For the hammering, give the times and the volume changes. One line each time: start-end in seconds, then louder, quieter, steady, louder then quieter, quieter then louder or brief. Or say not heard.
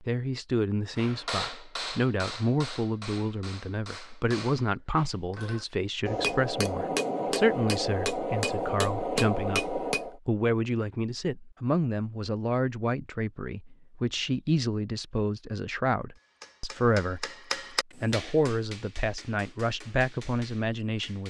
0.9-10.2 quieter then louder
16.1-21.2 louder then quieter.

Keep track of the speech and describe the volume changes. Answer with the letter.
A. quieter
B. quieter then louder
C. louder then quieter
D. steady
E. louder
D.